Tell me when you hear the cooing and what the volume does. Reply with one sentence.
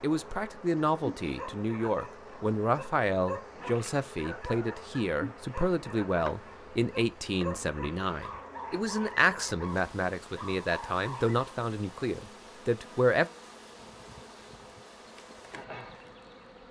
The cooing can't be heard in this clip.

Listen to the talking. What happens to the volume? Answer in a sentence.
The loudness of the talking stays about the same.